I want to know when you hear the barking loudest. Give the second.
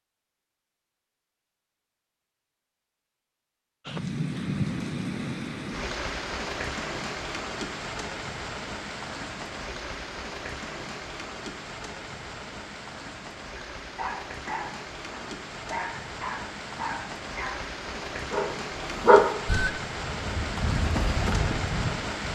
19 s.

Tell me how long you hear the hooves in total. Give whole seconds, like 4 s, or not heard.
2 s.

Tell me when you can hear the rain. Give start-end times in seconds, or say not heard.
3.9-22.3.